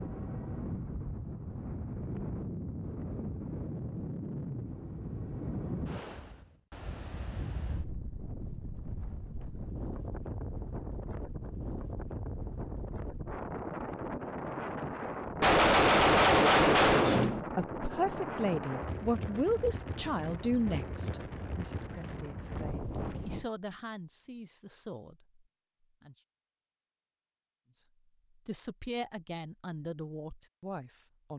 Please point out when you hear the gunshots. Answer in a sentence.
The gunshots can be heard from 15.4 to 17.4 s.